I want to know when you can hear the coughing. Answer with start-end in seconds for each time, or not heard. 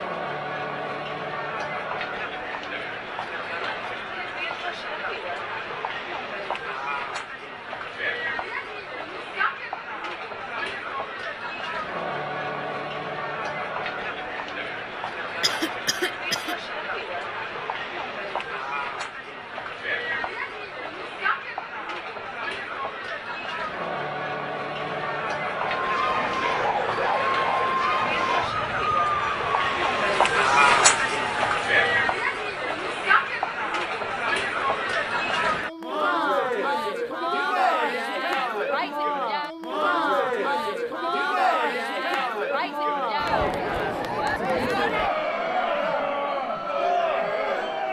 15.4-16.6.